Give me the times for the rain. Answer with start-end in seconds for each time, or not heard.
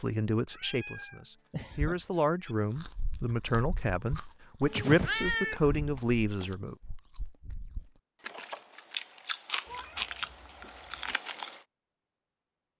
not heard.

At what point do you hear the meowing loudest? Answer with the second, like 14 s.
5 s.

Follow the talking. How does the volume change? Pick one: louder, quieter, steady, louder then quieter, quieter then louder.
louder.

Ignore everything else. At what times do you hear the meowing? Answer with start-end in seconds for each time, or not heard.
0.6-2.5, 4.6-6.5, 9.7-11.2.